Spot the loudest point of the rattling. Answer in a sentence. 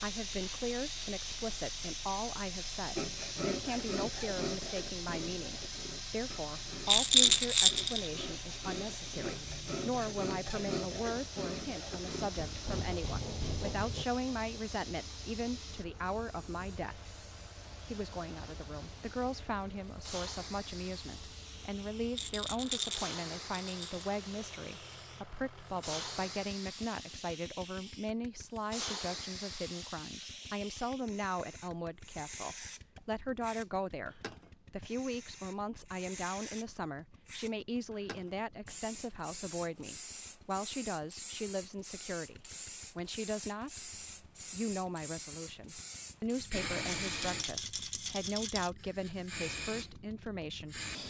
The volume of the rattling peaks at 7 seconds.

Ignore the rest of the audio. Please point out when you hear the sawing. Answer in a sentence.
You can hear the sawing from 3.0 to 14.1 s.